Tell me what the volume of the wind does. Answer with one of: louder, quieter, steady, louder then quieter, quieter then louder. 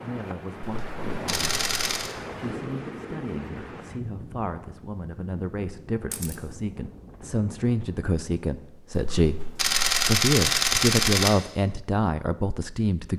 quieter.